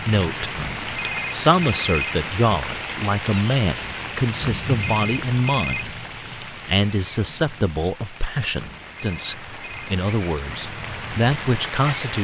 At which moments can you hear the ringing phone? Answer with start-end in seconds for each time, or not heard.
0.6-2.1, 4.4-5.8, 8.6-9.9.